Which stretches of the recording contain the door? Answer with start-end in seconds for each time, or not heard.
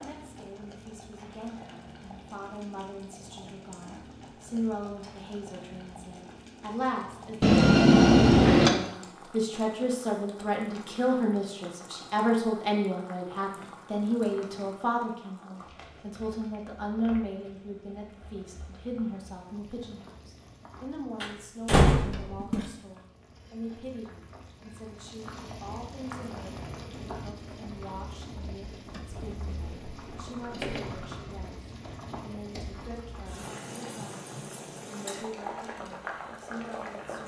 7.4-8.7, 21.2-22.6, 29.1-31.1.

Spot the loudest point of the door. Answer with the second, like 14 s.
8 s.